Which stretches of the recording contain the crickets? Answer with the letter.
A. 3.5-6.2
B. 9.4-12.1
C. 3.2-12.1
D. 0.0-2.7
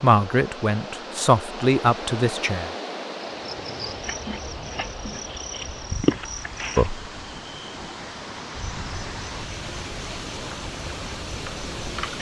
C.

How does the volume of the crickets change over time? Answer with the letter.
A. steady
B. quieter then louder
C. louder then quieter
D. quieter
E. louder
C.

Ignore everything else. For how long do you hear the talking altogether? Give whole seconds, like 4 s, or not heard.
3 s.